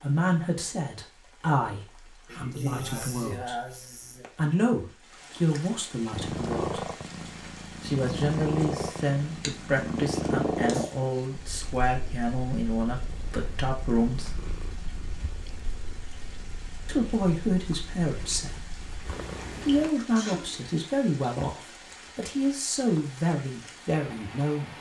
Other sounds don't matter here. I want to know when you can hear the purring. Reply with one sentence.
The purring can be heard from 6.1 to 19.9 s.